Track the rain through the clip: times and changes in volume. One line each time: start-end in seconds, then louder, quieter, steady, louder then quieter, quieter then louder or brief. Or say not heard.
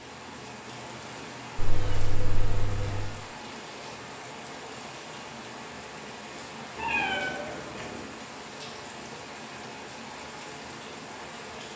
0.0-11.7 steady.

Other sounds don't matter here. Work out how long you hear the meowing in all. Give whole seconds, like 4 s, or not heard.
3 s.